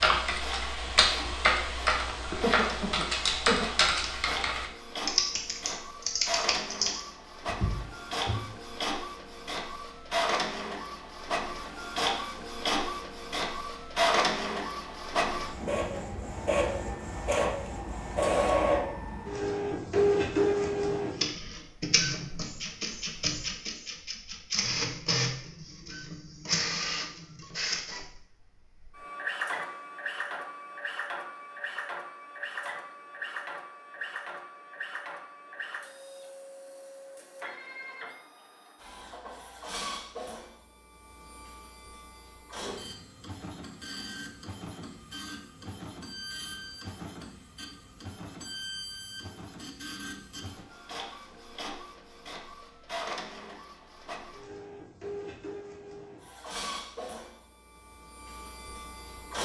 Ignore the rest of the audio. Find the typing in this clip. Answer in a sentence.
The typing can be heard from 0.0 to 8.4 s.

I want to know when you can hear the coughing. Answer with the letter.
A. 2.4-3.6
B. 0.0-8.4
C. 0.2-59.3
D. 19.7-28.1
A.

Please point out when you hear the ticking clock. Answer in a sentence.
You can't hear the ticking clock here.